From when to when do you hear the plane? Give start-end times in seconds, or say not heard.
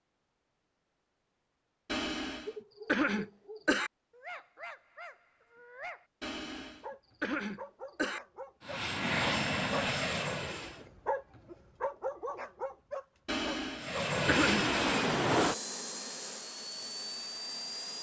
8.7-10.8, 13.8-17.9.